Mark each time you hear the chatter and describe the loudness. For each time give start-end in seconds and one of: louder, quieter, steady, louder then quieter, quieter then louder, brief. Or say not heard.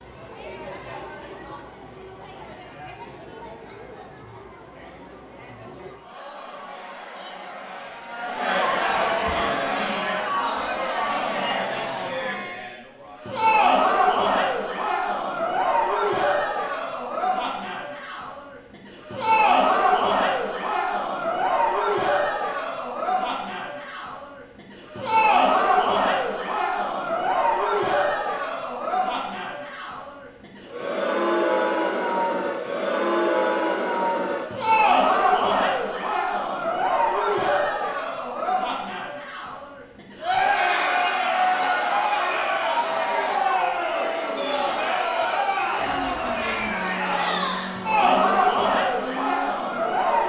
0.0-50.2 louder.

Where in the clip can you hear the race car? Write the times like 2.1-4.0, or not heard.
45.8-50.2.